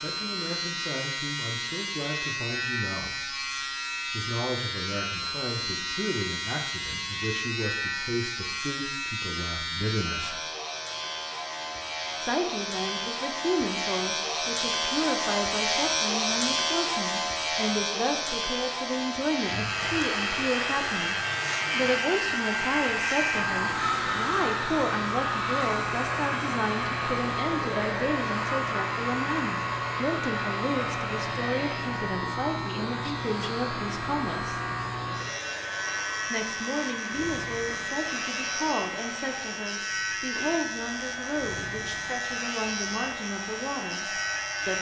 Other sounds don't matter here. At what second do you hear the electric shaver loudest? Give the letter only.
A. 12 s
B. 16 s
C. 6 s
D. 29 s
B.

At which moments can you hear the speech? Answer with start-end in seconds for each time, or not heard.
0.0-3.5, 4.0-10.4, 12.2-34.6, 36.3-44.7.